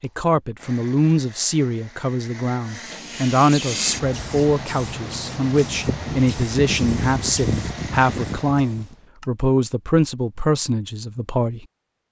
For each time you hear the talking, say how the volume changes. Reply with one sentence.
The talking can be heard from 0.0 to 11.7 s, at a steady volume.